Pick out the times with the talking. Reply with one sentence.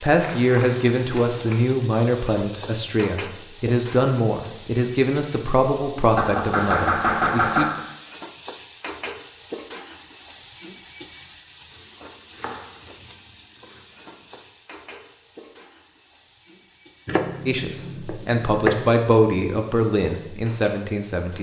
The talking can be heard from 0.0 to 7.7 s and from 17.4 to 21.3 s.